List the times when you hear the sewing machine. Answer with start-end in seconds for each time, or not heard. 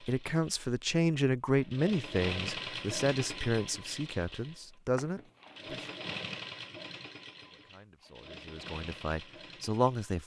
0.0-10.2.